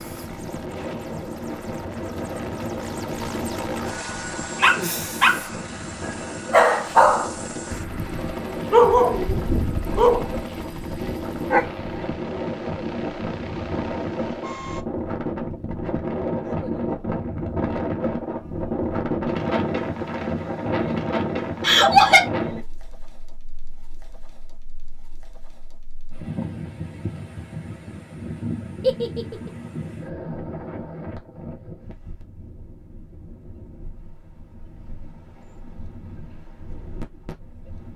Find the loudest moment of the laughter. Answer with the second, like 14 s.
22 s.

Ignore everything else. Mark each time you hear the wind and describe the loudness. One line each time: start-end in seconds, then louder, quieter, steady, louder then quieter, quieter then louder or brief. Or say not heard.
0.0-37.9 louder then quieter.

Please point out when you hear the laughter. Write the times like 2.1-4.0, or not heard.
4.6-5.3, 21.6-22.2, 28.8-29.5.